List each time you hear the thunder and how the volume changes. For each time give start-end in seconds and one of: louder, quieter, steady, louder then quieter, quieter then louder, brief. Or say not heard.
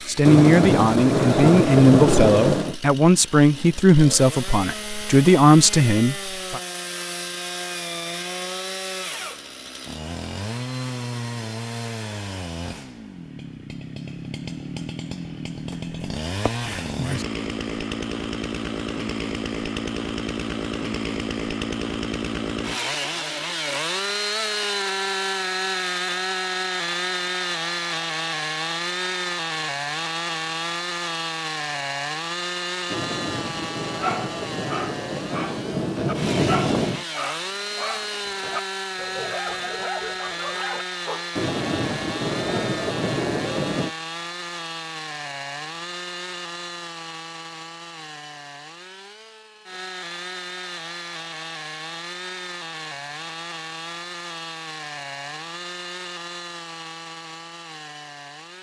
0.2-2.8 brief
32.9-37.0 louder
41.4-44.0 brief.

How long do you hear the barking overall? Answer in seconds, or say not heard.
7 s.